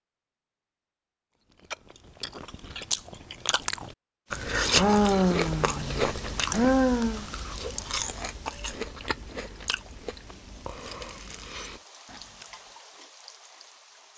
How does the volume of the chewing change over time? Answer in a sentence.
The volume of the chewing goes up, then down.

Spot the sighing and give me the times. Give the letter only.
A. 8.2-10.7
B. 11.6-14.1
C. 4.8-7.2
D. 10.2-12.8
C.